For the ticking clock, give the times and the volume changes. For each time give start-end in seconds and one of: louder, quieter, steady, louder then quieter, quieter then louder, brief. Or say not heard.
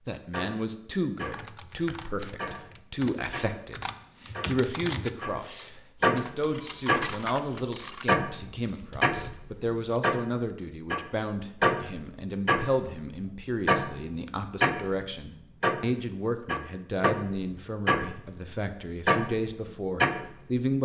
0.2-20.6 louder.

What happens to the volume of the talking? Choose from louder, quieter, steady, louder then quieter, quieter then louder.
steady.